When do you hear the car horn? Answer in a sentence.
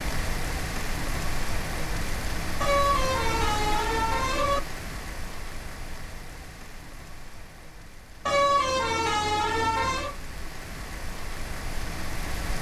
The car horn can be heard from 2.6 to 4.6 s and from 8.2 to 10.2 s.